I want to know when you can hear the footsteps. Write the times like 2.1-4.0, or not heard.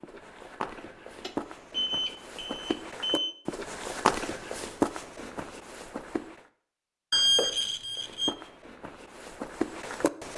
0.0-6.5, 8.0-10.3.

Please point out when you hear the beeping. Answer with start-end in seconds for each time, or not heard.
1.2-3.4, 7.1-8.3.